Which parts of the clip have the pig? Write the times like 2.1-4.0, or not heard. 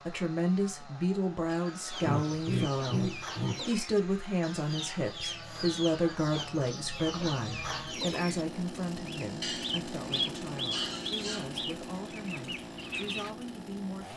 2.0-3.6, 9.4-11.7.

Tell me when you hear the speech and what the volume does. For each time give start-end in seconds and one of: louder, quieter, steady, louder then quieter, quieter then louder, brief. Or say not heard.
0.1-14.1 quieter.